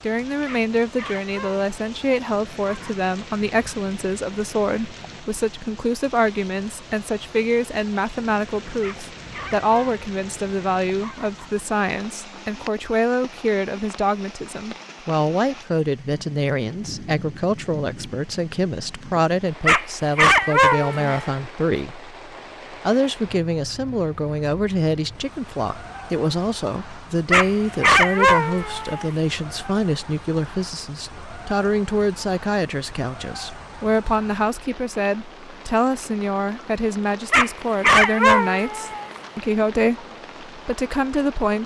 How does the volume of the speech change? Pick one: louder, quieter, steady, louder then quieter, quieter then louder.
steady.